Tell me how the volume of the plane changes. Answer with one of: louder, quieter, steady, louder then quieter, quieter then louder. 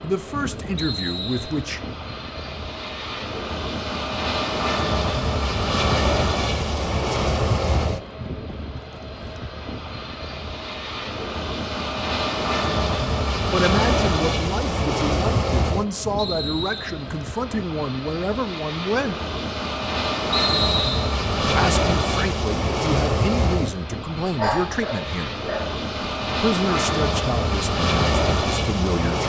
steady.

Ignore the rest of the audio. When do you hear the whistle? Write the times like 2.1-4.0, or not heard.
0.8-1.6, 16.1-17.1, 20.3-21.1.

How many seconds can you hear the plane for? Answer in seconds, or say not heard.
29 s.